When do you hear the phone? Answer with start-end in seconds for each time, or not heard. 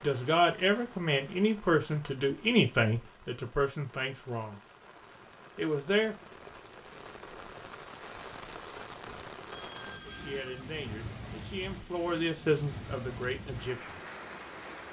9.5-10.7.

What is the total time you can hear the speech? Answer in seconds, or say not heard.
9 s.